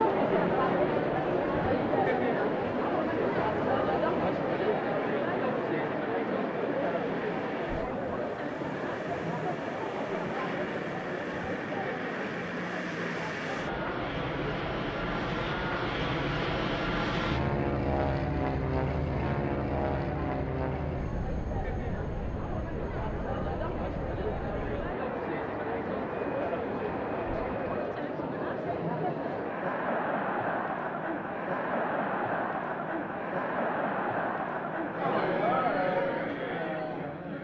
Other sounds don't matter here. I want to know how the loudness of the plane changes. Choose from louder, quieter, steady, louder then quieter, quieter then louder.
louder then quieter.